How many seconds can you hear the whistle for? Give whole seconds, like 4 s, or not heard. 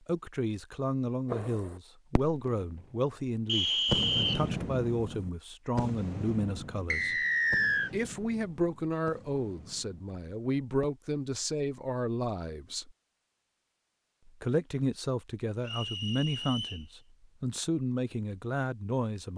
3 s.